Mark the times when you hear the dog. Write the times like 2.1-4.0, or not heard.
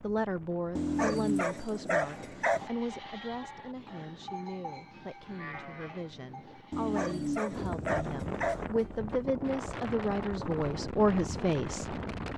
0.8-2.7, 6.7-8.7.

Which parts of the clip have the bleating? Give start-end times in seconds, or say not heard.
2.0-7.2.